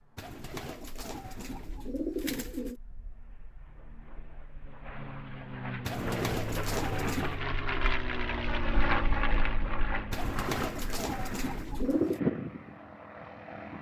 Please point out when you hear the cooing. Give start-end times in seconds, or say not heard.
0.1-2.8, 5.8-7.4, 10.1-12.2.